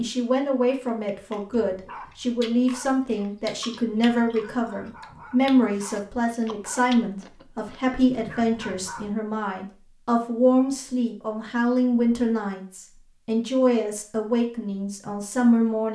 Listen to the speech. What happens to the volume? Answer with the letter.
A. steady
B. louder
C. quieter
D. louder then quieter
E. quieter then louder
A.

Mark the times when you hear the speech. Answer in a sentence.
You can hear the speech from 0.0 to 15.8 s.